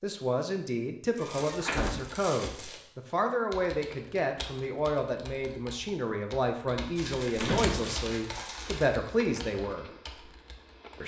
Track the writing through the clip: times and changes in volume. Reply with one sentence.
You can't hear the writing here.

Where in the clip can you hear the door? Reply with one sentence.
You can hear the door from 1.1 to 2.1 s and from 7.3 to 8.0 s.